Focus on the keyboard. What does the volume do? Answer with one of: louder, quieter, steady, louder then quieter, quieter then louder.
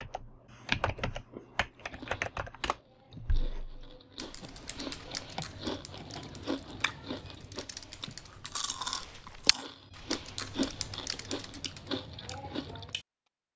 quieter then louder.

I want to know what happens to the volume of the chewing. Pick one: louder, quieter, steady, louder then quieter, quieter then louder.
louder.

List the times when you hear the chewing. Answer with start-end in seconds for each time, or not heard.
1.8-13.1.